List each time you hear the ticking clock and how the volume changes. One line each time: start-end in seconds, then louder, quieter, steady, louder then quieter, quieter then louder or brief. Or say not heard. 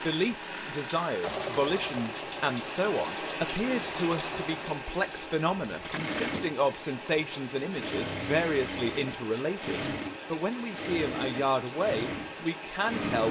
not heard.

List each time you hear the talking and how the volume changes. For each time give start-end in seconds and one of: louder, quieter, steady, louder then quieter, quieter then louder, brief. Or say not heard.
0.0-13.2 steady.